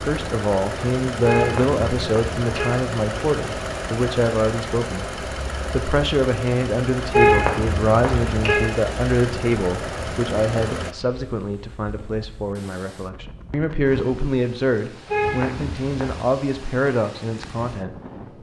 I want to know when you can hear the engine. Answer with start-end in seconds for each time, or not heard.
0.0-10.9.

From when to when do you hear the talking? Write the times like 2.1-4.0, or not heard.
0.1-18.3.